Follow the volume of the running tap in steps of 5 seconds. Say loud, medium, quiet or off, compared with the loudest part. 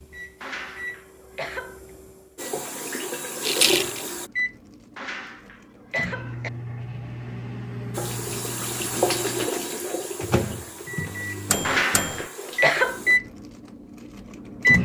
loud, loud, medium.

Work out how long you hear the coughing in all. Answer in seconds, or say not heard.
4 s.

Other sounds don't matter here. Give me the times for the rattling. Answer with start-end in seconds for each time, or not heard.
3.4-4.0.